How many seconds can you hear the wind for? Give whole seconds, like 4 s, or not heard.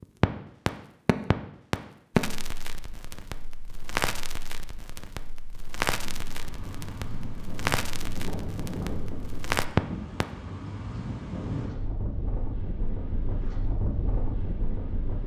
9 s.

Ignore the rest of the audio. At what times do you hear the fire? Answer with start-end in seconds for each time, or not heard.
0.0-10.2.